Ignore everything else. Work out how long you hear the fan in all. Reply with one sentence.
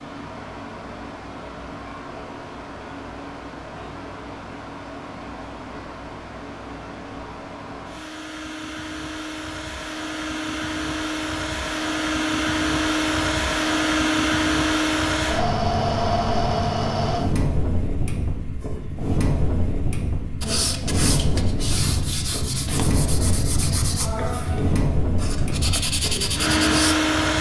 The fan can be heard for 27 seconds in total.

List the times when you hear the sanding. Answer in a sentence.
The sanding can be heard from 20.4 to 26.9 s.